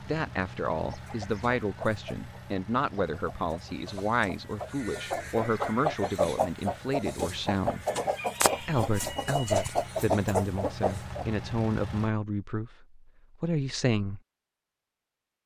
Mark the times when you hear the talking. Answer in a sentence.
The talking can be heard from 0.0 to 7.8 s and from 8.6 to 14.2 s.